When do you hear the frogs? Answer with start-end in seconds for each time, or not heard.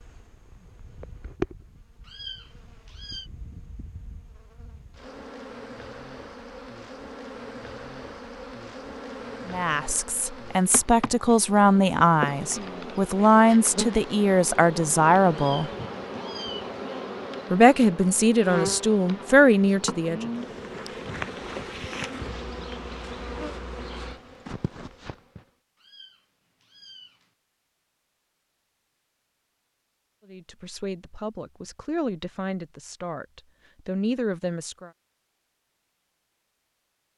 not heard.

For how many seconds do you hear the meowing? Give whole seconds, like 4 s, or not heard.
4 s.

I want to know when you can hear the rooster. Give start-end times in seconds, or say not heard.
not heard.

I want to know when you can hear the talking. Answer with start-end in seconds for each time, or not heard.
9.4-15.7, 17.5-20.3, 30.3-34.9.